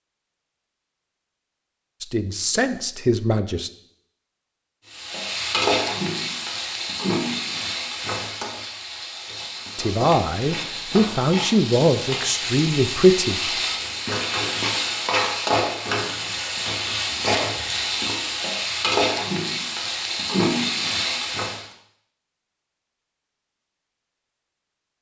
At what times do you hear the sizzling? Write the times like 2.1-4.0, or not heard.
4.8-21.7.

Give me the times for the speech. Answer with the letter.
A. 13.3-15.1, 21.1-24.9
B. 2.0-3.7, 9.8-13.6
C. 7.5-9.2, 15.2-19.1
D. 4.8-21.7
B.